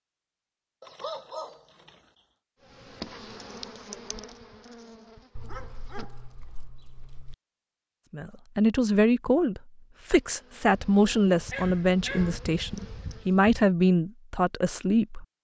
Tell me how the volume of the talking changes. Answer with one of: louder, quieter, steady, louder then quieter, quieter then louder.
steady.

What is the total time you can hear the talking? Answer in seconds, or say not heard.
7 s.